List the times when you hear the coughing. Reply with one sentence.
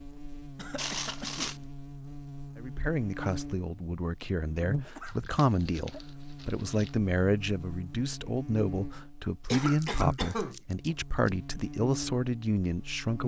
You can hear the coughing from 0.6 to 1.6 s, from 4.8 to 6.0 s and from 9.4 to 10.9 s.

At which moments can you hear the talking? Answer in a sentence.
You can hear the talking from 2.5 to 13.2 s.